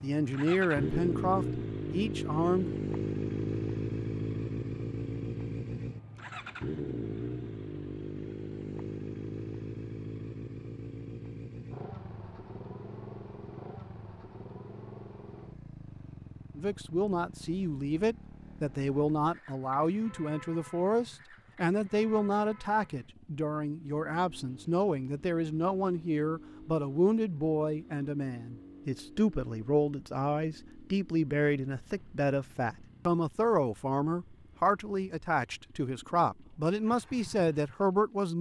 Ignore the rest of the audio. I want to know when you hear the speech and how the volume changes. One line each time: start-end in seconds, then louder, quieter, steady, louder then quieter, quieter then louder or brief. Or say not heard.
0.0-2.8 brief
16.6-38.3 steady.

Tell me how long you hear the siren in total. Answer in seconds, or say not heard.
not heard.